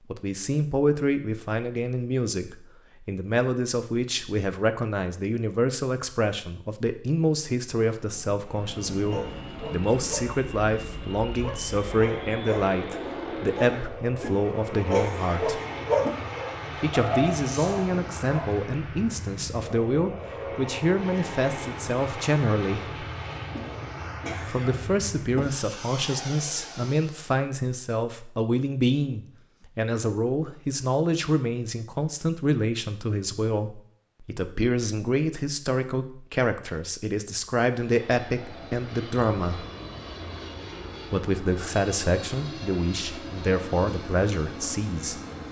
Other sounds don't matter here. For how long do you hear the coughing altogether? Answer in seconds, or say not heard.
4 s.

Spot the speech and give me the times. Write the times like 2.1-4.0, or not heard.
0.1-15.6, 16.8-23.1, 24.4-39.6, 41.1-45.2.